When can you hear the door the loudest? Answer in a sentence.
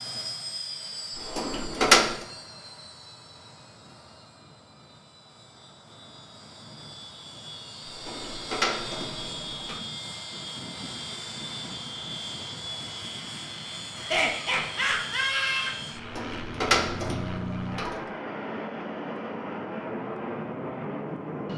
The loudest moment of the door is at 2 seconds.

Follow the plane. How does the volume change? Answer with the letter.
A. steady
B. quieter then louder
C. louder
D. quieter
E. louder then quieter
C.